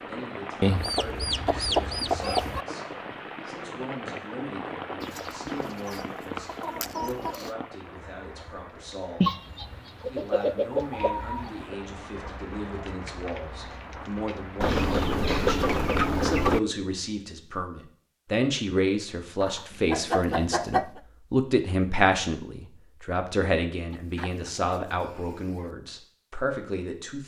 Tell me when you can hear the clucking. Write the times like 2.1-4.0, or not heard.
0.6-2.6, 5.0-7.5, 9.2-11.8, 14.6-16.6, 19.4-21.0, 23.9-25.7.